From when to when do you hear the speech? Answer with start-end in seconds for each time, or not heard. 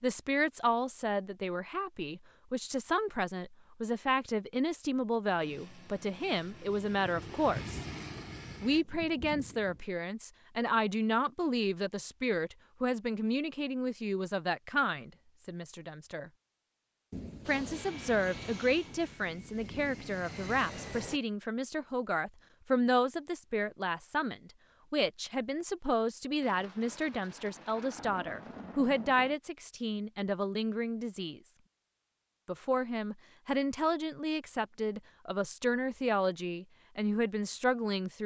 0.0-7.8, 8.6-16.3, 17.4-31.4, 32.5-38.2.